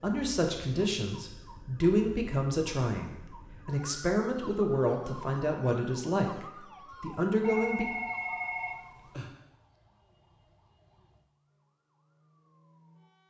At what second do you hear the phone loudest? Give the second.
8 s.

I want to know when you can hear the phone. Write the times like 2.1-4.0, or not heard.
7.4-9.3.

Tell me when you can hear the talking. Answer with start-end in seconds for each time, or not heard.
0.0-7.8.